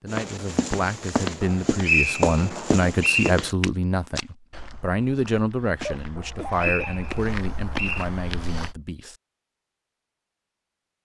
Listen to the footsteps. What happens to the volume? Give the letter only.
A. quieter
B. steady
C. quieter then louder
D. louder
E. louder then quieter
C.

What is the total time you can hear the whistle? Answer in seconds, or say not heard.
4 s.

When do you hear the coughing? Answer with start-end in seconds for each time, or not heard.
5.8-7.0.